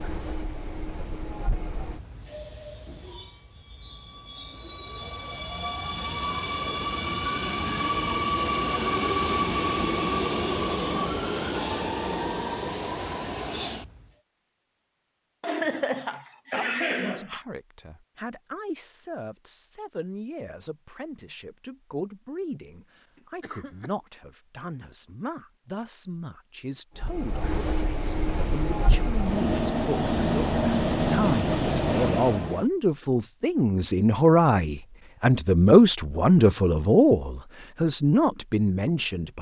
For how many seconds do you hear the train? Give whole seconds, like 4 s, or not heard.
20 s.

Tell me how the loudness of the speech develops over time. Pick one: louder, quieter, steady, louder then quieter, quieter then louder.
louder.